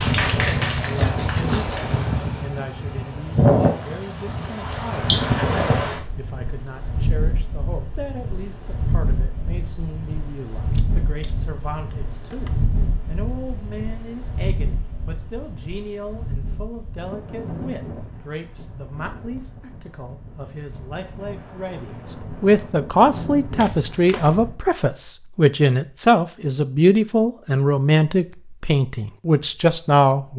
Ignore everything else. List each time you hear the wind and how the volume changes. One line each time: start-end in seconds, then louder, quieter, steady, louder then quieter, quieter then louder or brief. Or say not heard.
0.0-24.6 quieter.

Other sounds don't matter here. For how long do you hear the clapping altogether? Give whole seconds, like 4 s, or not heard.
2 s.